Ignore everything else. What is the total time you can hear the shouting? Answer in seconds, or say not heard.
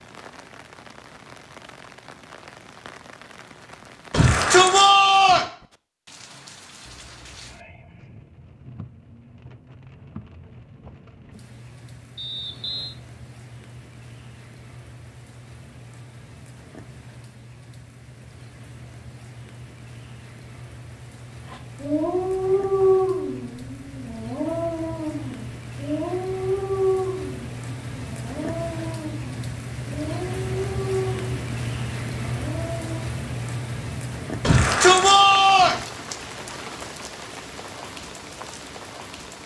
3 s.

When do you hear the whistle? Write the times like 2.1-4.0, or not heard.
12.2-12.9.